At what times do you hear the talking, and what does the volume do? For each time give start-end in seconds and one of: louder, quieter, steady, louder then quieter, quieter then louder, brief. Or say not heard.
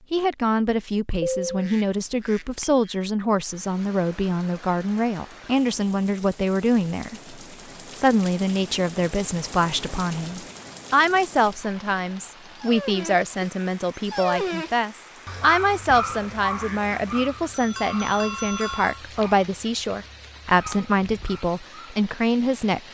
0.1-22.8 steady.